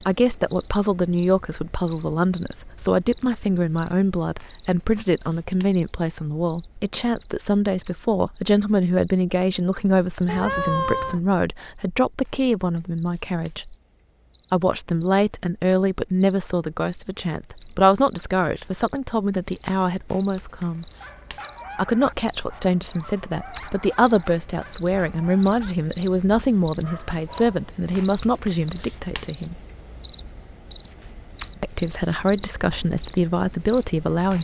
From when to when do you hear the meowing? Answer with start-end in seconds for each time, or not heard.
10.2-11.2.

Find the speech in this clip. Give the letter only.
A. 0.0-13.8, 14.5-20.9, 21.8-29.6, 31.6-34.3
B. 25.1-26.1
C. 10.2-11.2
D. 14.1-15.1
A.